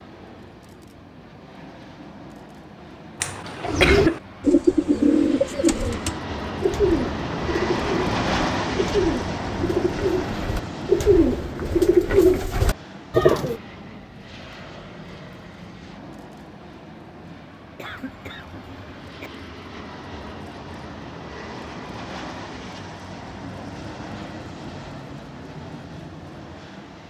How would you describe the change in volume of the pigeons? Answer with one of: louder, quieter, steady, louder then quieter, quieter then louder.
quieter then louder.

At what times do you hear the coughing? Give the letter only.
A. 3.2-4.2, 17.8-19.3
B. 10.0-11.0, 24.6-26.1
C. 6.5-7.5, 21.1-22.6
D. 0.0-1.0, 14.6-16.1
A.